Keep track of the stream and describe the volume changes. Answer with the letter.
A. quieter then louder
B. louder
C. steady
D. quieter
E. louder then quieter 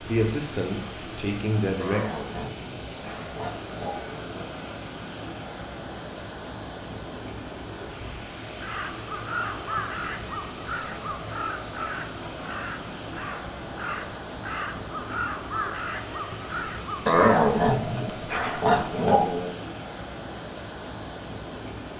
C.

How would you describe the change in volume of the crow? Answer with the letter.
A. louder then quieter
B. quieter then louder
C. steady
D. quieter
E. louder
B.